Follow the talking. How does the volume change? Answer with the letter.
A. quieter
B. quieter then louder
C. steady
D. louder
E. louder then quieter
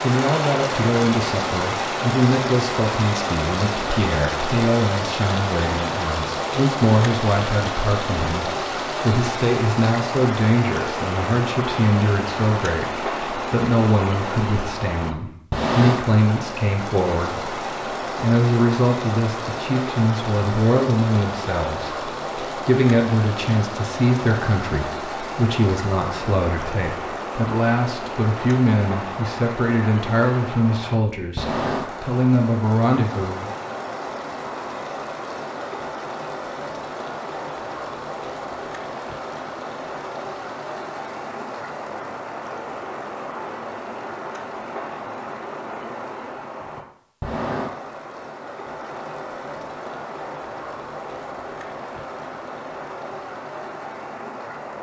C.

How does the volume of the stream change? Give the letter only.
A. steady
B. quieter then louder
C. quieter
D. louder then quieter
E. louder
C.